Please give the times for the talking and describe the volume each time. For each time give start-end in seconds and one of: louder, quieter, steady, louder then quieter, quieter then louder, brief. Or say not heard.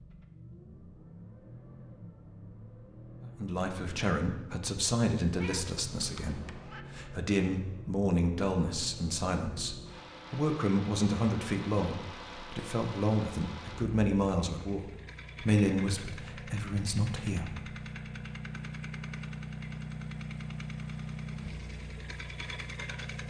3.2-17.8 steady.